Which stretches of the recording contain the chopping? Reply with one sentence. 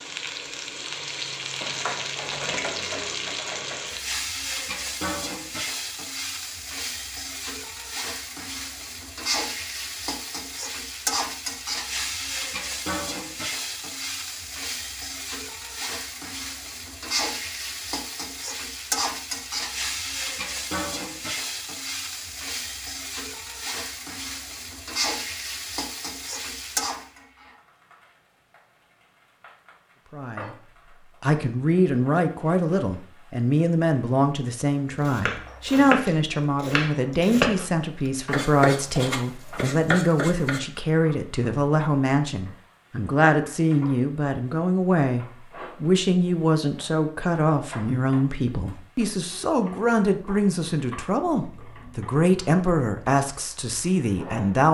You can hear the chopping from 35.0 to 37.6 s and from 38.3 to 40.6 s.